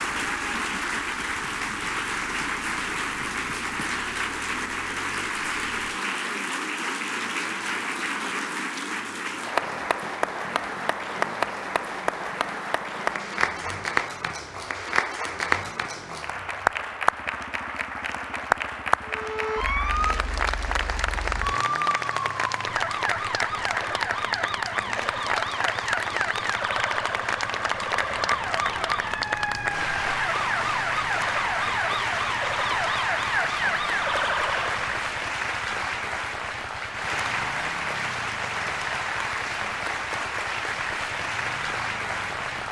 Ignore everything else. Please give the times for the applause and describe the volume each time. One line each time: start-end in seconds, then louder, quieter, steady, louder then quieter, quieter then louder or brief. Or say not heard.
0.0-42.6 steady.